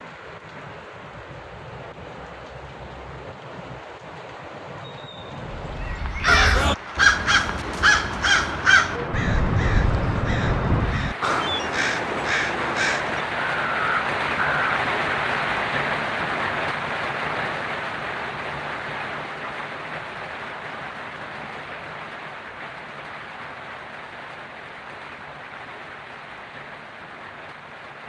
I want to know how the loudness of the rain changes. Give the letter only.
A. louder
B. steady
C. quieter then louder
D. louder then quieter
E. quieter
D.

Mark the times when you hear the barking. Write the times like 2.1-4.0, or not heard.
not heard.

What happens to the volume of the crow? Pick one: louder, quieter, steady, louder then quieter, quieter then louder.
quieter.